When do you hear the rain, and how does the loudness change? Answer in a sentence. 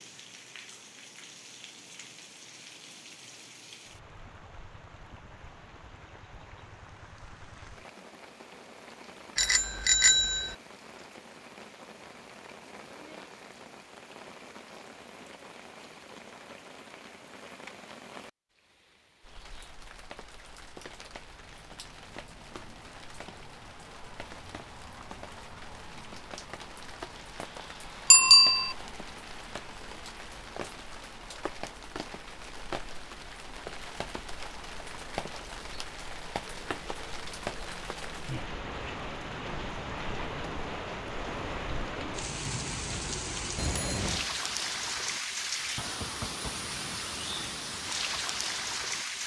You can hear the rain from 0.0 to 49.2 s, getting louder.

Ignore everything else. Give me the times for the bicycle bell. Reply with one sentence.
The bicycle bell can be heard from 9.3 to 10.6 s, from 28.1 to 28.8 s and from 43.5 to 44.2 s.